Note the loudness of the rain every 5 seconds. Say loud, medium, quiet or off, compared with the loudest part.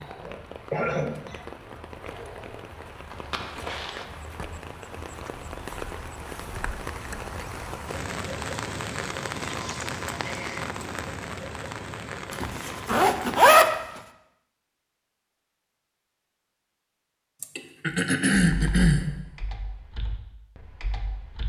medium, loud, loud, off, off.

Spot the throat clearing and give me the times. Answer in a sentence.
You can hear the throat clearing from 0.2 to 1.4 s, from 9.6 to 10.7 s and from 17.4 to 19.1 s.